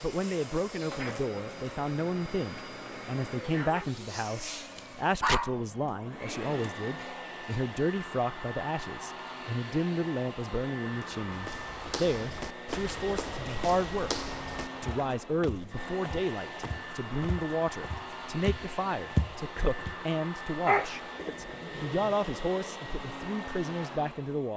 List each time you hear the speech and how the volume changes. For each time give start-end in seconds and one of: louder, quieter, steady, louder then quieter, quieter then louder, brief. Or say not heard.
0.0-24.5 steady.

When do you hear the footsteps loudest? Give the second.
19 s.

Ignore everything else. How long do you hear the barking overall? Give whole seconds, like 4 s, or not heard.
4 s.